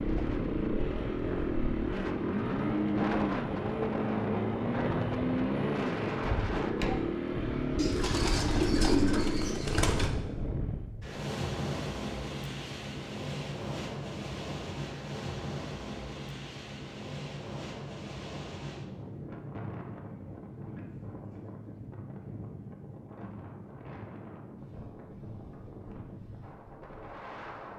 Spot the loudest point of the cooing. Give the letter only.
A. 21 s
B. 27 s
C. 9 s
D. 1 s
C.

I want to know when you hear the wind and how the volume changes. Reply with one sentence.
You can hear the wind from 0.0 to 27.7 s, getting quieter.